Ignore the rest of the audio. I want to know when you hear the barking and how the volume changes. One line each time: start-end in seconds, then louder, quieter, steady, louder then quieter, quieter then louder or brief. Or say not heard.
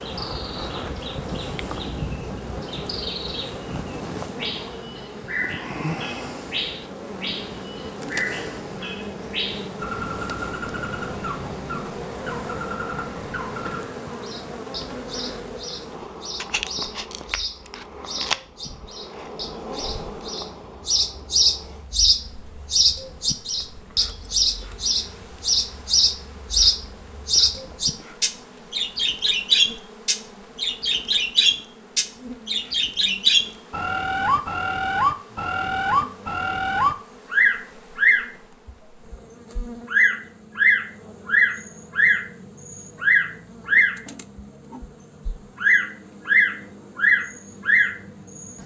not heard.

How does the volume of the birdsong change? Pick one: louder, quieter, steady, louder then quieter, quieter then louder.
louder.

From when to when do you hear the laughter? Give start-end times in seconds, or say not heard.
not heard.